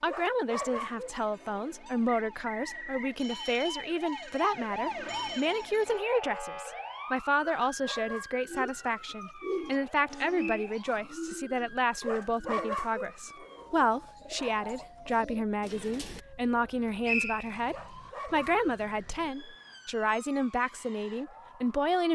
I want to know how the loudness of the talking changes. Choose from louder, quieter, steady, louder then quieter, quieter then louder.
steady.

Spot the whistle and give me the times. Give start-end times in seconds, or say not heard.
2.2-3.2, 10.3-10.8, 17.1-17.6.